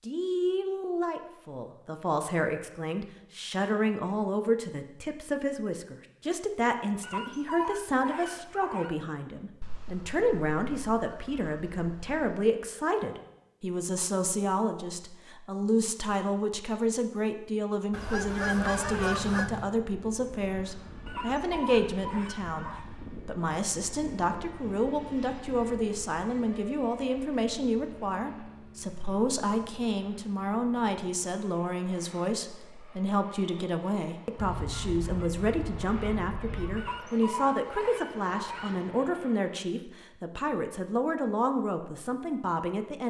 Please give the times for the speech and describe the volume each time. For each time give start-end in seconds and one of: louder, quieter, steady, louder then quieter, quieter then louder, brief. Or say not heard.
0.0-43.0 steady.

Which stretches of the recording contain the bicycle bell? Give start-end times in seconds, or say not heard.
not heard.